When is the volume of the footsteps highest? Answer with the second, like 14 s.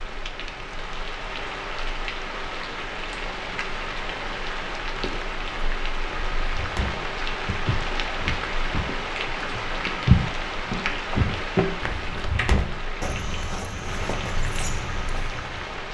10 s.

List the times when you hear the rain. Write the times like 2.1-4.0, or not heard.
0.0-15.8.